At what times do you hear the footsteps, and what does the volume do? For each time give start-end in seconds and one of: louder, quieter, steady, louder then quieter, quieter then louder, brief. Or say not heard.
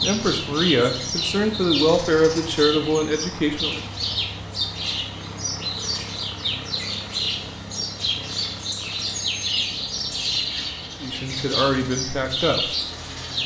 not heard.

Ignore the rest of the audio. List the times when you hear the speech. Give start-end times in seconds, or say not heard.
0.0-3.9, 11.0-12.7.